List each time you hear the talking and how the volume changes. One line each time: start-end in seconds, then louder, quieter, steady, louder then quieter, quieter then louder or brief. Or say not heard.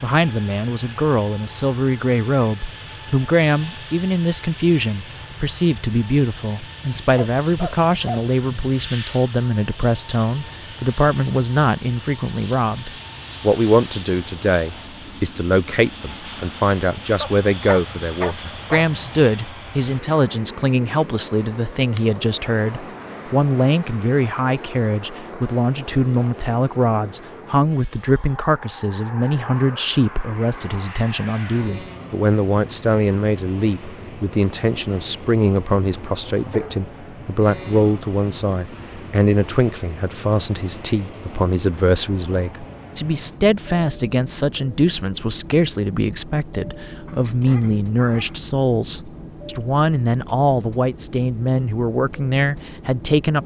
0.0-53.4 steady.